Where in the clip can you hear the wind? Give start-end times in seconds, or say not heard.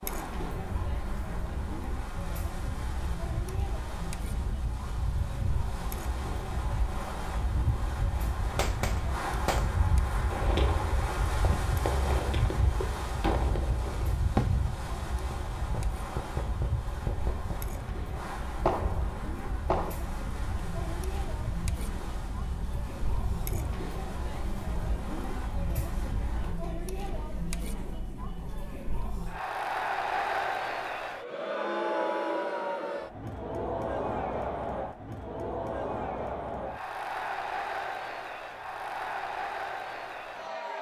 0.0-26.6.